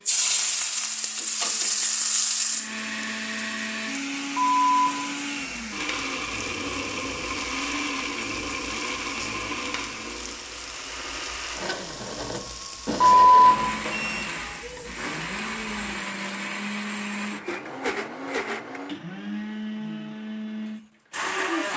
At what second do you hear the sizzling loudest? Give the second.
2 s.